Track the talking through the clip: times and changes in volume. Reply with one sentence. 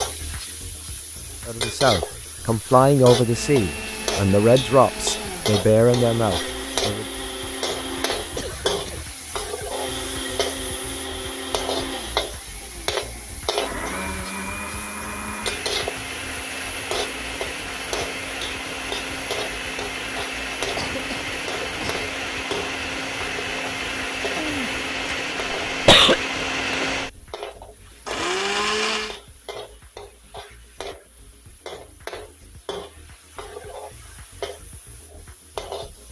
You can hear the talking from 1.4 to 7.0 s, at a steady volume.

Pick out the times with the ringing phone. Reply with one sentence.
The ringing phone can't be heard in this clip.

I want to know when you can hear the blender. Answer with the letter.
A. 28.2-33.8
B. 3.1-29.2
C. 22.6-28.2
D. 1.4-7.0
B.